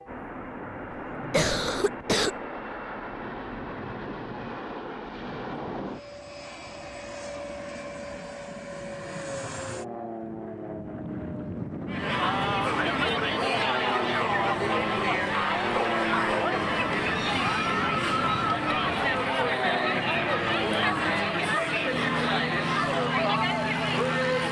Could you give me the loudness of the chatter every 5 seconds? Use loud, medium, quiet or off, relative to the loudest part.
off, off, loud, loud, loud.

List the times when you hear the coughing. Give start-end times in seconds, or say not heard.
1.3-2.3.